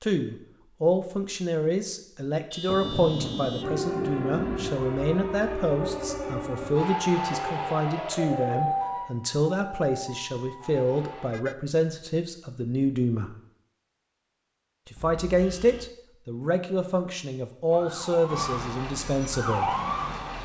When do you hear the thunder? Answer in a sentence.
The thunder can be heard from 2.6 to 4.7 s.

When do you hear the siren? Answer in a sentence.
The siren can be heard from 3.6 to 11.3 s and from 17.7 to 20.4 s.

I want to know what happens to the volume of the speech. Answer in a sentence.
The loudness of the speech stays about the same.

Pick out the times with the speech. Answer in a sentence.
The speech can be heard from 0.0 to 13.3 s and from 14.8 to 19.7 s.